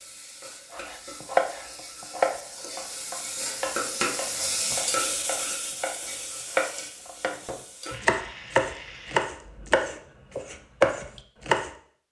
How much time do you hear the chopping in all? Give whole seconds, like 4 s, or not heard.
11 s.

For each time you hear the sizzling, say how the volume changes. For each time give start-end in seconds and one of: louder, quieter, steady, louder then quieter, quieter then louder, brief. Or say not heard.
0.0-9.2 louder then quieter.